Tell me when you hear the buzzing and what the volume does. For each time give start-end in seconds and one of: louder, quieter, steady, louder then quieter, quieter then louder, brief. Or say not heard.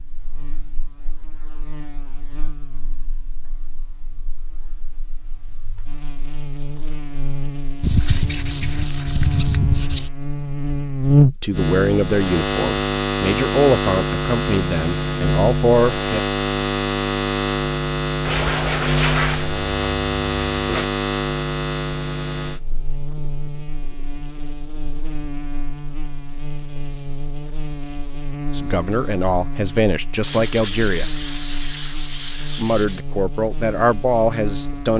0.0-34.9 louder then quieter.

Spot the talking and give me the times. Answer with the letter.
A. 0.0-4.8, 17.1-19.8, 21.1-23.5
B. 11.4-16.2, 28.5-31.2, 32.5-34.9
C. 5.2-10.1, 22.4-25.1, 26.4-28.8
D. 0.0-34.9
B.